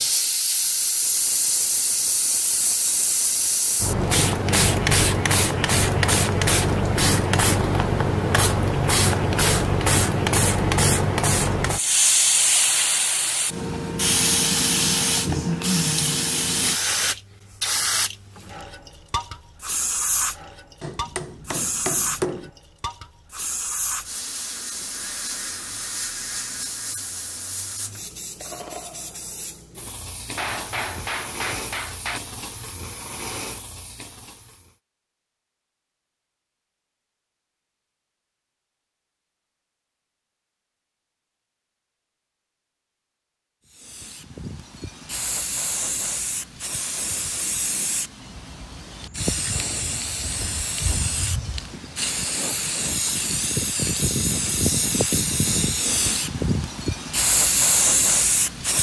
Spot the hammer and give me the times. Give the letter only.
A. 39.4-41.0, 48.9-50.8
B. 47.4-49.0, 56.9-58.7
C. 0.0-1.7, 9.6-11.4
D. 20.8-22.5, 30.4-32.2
D.